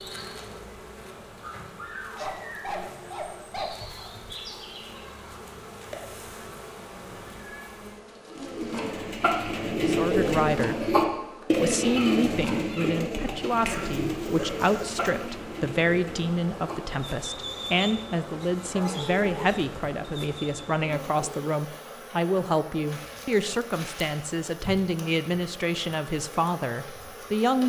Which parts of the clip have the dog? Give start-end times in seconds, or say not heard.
2.1-4.1, 13.7-15.2, 18.7-19.2.